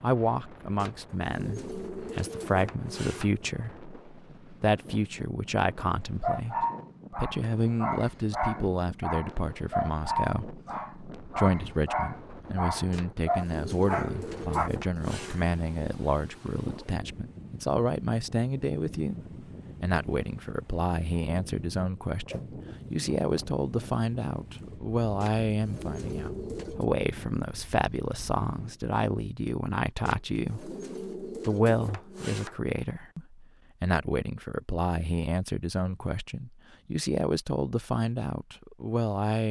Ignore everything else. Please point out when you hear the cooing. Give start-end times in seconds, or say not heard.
0.8-3.5, 12.9-15.3, 25.2-26.9, 30.1-32.6.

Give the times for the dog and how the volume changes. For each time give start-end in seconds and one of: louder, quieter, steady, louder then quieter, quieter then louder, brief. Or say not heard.
6.2-14.7 steady.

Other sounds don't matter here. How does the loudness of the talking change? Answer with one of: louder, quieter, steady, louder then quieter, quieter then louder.
steady.